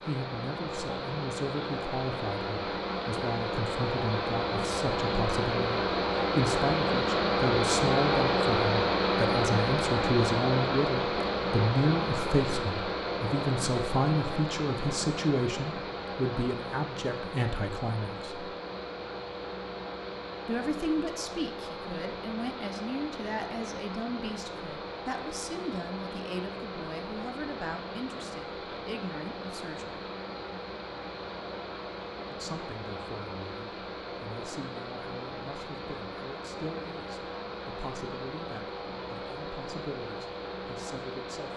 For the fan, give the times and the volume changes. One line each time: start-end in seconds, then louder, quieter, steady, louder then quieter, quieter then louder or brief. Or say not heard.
0.0-41.5 quieter.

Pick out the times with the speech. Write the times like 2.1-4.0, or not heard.
0.1-18.5, 20.4-30.0, 32.3-41.5.